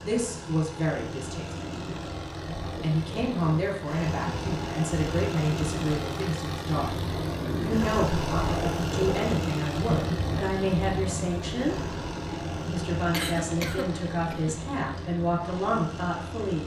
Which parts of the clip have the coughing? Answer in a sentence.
You can hear the coughing from 13.1 to 14.6 s.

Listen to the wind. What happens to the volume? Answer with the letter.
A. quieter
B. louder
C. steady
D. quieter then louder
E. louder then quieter
E.